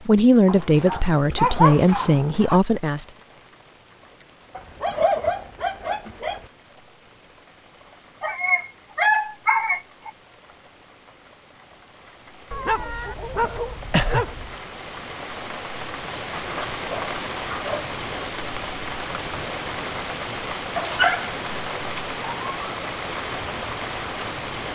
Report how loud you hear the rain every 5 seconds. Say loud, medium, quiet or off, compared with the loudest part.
quiet, quiet, quiet, loud, loud.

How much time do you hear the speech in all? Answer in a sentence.
You can hear the speech for 3 seconds altogether.